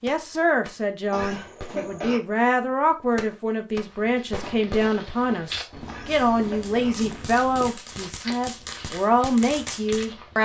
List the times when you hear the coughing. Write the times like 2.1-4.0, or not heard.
1.1-2.2, 5.8-7.0.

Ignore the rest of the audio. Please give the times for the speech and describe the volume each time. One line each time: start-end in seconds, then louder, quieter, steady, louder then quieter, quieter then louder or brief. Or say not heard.
0.0-10.4 steady.